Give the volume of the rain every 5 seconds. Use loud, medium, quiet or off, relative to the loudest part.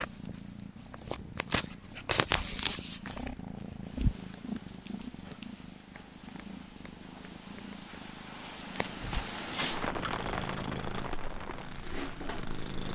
quiet, loud, loud.